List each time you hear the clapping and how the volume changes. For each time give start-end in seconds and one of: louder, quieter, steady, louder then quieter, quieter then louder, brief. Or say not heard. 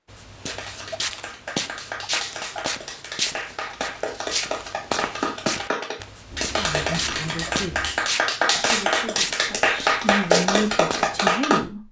0.5-11.6 louder.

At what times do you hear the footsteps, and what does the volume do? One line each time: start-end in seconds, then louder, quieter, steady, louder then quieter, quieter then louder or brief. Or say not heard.
0.1-11.3 steady.